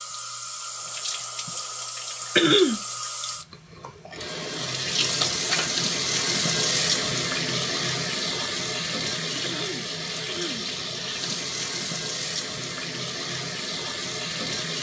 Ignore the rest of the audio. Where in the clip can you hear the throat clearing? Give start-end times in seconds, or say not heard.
2.4-2.8, 9.4-10.7.